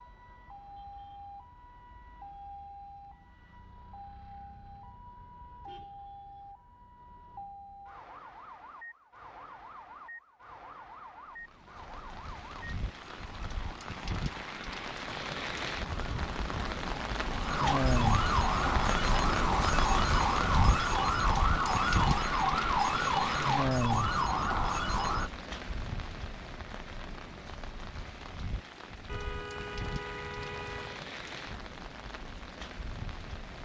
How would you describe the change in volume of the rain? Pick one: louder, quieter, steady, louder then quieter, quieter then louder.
louder then quieter.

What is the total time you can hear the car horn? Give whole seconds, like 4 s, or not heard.
4 s.